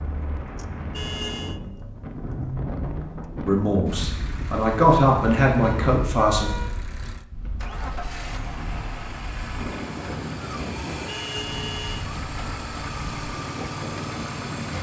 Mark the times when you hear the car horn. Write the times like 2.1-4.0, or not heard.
0.9-1.6, 5.6-6.7, 11.1-12.1.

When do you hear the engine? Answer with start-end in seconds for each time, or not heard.
0.1-14.7.